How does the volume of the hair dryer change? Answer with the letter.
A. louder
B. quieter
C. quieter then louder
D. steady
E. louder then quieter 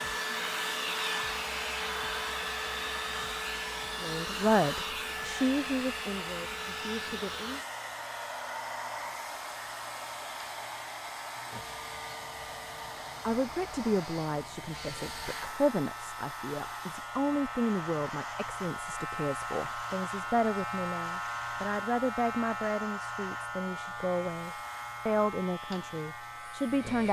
B.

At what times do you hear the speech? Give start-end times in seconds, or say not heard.
4.0-7.6, 13.2-27.0.